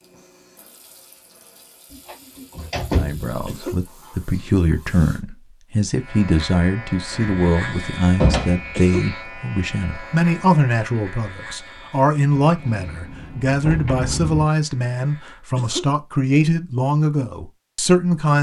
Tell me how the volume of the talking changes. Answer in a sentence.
The volume of the talking stays about the same.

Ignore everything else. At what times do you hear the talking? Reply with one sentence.
You can hear the talking from 3.0 to 18.3 s.